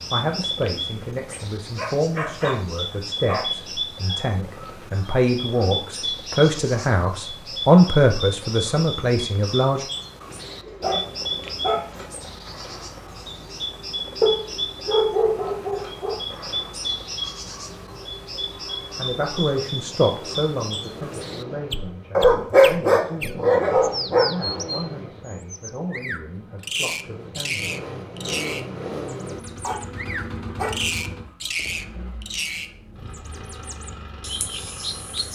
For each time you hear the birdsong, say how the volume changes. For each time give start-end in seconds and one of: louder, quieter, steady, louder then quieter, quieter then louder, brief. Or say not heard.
0.0-35.3 steady.